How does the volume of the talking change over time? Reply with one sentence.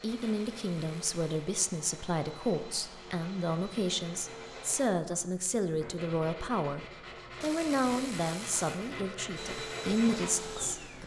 The volume of the talking stays about the same.